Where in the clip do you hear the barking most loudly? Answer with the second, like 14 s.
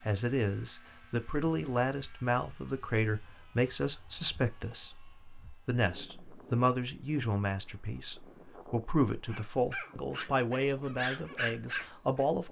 12 s.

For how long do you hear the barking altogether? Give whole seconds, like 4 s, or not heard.
3 s.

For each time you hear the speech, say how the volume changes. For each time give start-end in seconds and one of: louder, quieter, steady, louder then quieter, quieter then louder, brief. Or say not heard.
0.0-12.4 steady.